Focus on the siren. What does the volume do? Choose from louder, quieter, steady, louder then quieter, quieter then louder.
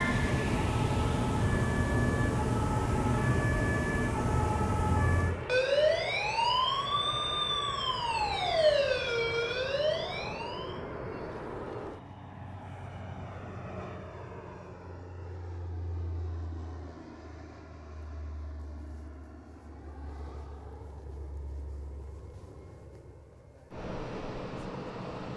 steady.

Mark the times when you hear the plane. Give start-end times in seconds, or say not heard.
0.0-25.3.